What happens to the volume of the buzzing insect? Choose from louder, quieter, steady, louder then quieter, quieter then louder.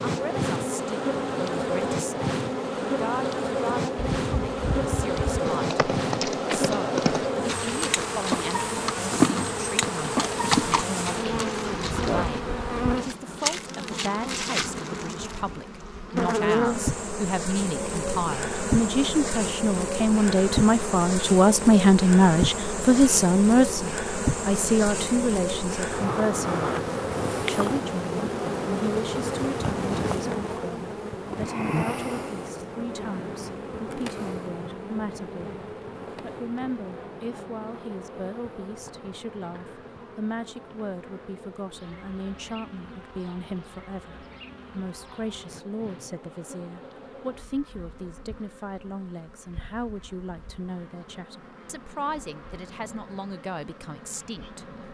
quieter.